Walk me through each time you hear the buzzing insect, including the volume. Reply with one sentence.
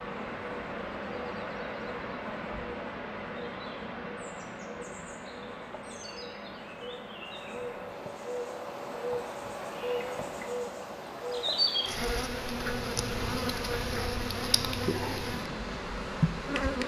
The buzzing insect can be heard from 0.2 to 16.8 s, getting louder.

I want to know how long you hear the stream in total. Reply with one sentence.
The stream can be heard for 17 seconds in total.